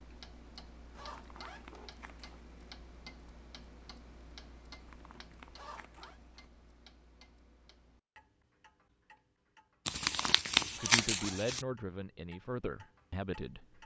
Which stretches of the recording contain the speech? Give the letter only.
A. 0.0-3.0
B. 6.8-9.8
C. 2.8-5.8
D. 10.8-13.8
D.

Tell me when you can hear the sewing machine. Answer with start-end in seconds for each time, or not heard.
not heard.